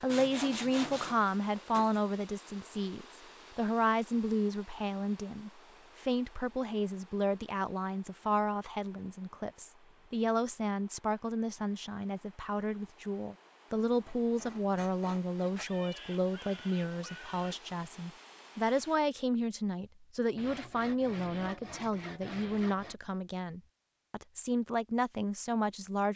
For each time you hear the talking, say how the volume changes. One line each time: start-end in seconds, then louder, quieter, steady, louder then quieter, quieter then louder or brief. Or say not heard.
0.0-26.1 steady.